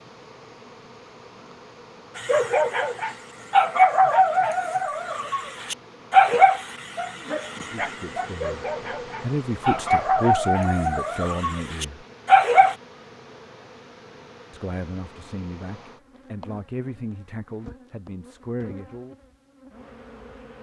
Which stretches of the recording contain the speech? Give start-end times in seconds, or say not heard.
7.5-12.1, 14.5-19.1.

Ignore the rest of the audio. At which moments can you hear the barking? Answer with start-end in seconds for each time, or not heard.
2.1-12.8.